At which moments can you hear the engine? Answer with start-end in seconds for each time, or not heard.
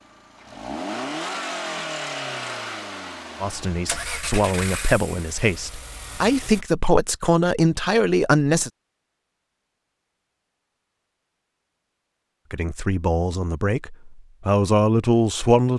0.0-6.7.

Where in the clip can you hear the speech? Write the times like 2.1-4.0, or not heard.
3.4-8.7, 12.5-15.7.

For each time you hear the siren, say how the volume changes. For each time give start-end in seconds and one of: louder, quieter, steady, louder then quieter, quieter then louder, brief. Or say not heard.
not heard.